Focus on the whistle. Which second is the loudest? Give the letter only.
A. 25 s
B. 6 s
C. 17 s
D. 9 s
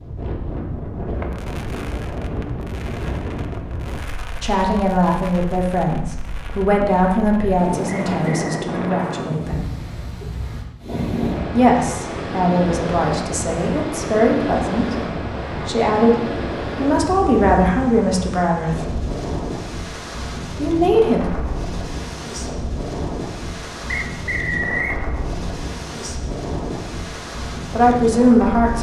A.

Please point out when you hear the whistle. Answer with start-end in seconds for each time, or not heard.
7.8-8.7, 23.9-25.0.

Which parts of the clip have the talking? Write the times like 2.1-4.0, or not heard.
4.4-9.7, 11.5-18.9, 20.6-21.2, 27.7-28.7.